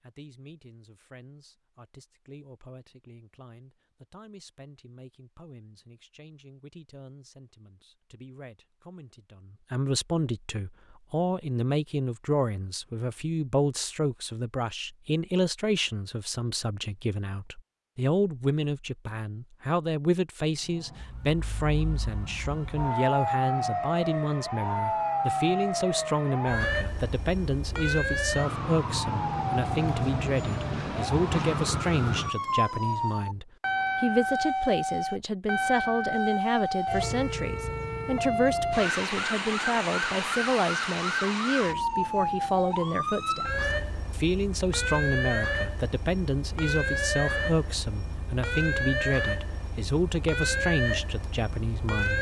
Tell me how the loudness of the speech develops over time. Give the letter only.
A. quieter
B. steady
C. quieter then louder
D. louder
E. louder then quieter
D.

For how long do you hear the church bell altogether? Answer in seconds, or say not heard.
not heard.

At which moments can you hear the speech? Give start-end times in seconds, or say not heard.
0.0-52.1.